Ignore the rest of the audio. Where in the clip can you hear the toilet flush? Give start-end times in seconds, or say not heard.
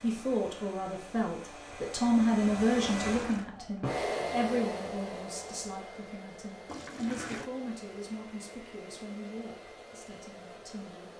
3.0-3.5, 6.7-7.5.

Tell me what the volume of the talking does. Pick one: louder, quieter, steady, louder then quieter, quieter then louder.
quieter.